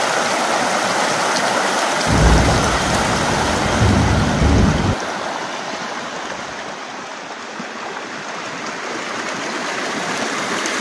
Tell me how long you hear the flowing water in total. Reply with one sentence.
The flowing water can be heard for 11 seconds in total.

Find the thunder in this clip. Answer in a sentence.
The thunder can be heard from 2.0 to 5.0 s.